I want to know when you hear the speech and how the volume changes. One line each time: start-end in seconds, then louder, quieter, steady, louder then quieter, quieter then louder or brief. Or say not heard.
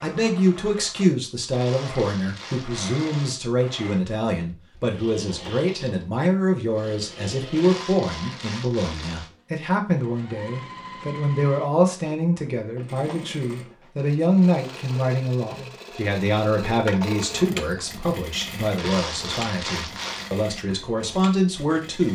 0.0-22.0 steady.